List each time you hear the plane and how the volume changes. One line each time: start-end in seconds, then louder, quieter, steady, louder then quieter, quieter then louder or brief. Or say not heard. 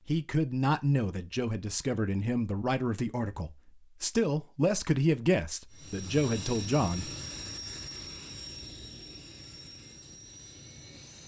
5.7-11.2 quieter.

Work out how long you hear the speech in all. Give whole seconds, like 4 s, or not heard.
7 s.